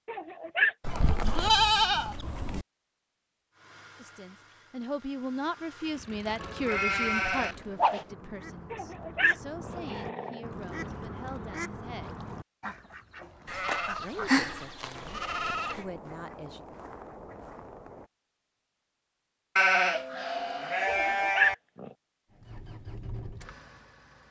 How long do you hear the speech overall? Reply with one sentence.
The speech can be heard for 11 seconds in total.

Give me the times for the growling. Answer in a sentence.
The growling can be heard from 0.1 to 0.8 s, from 8.7 to 10.4 s and from 20.9 to 21.9 s.